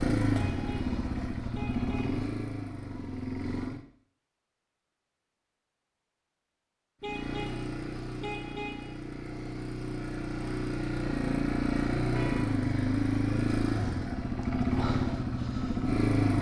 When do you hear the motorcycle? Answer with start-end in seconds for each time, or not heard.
0.0-3.8, 7.0-16.3.